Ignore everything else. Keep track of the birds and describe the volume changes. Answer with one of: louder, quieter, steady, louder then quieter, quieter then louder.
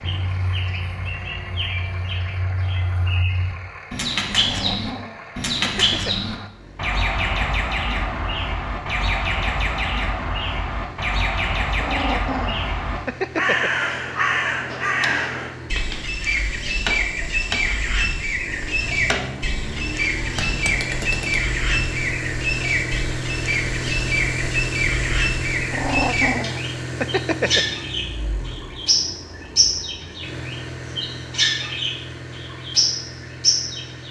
steady.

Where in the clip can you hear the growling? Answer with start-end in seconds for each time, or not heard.
4.3-6.2, 11.8-13.7, 25.7-27.6.